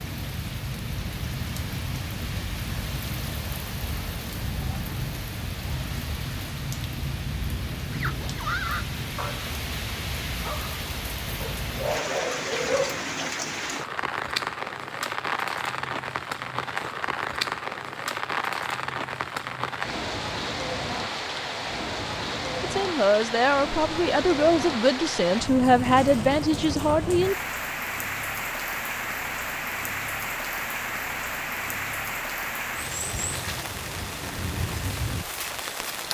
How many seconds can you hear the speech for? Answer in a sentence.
The speech can be heard for 5 seconds in total.